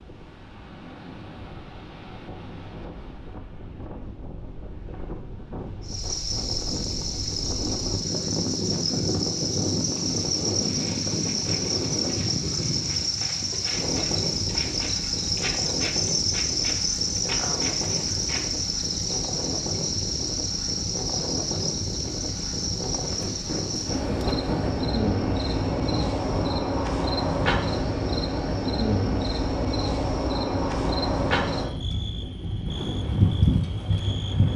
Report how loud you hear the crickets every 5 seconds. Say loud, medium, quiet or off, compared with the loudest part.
off, loud, loud, loud, loud, loud, loud.